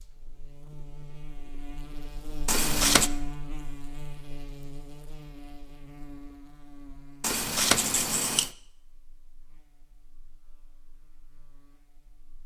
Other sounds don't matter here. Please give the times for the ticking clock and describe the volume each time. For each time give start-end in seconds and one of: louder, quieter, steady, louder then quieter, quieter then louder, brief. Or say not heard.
not heard.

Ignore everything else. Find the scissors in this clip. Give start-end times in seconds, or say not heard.
2.5-3.1, 7.2-8.5.